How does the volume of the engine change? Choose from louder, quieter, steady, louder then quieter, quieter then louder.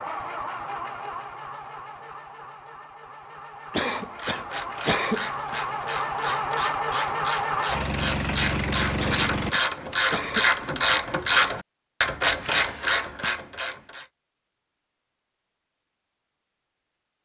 quieter then louder.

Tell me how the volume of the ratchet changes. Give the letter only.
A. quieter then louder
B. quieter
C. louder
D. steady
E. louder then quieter
C.